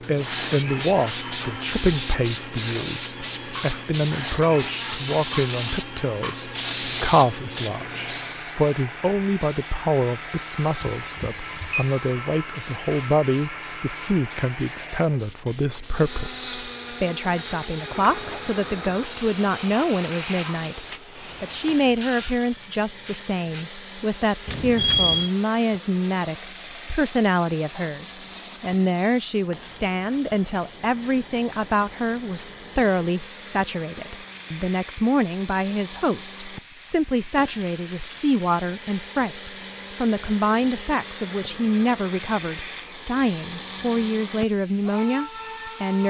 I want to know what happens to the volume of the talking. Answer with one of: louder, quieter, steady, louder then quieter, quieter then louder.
steady.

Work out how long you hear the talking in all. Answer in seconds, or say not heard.
46 s.